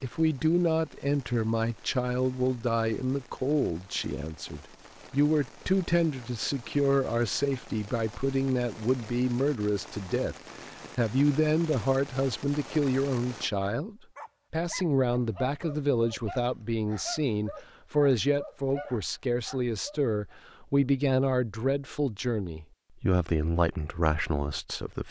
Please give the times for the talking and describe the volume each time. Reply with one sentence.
The talking can be heard from 0.0 to 10.3 s, at a steady volume; and from 10.9 to 25.0 s, at a steady volume.